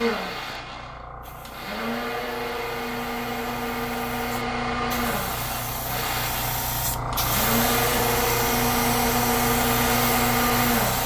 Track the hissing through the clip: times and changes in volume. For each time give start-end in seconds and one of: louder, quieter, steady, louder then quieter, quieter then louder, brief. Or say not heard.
0.0-11.0 louder.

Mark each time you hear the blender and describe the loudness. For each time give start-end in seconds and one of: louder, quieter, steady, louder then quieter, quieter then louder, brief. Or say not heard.
0.0-11.0 louder.